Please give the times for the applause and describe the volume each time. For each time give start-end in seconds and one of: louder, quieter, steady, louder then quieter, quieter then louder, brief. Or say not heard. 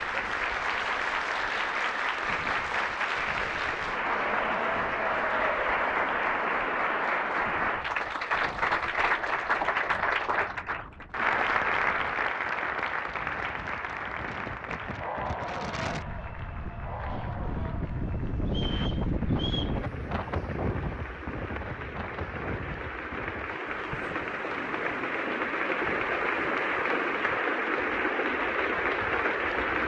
0.0-29.8 quieter then louder.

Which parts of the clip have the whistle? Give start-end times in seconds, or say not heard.
18.4-19.8.